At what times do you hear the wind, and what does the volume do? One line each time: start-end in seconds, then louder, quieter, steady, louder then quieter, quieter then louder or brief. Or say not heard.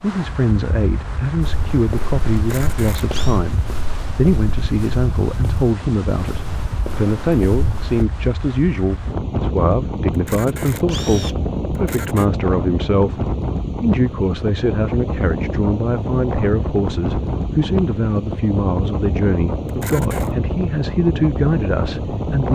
0.0-22.5 louder.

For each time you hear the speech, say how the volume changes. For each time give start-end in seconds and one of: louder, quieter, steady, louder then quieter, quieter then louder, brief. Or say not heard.
0.0-22.5 steady.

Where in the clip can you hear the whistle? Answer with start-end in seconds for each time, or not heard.
not heard.